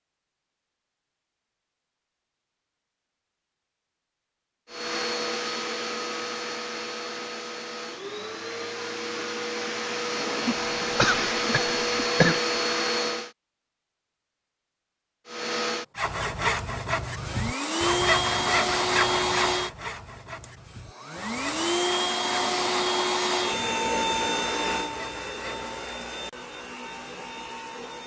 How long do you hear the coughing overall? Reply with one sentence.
You can hear the coughing for 2 seconds altogether.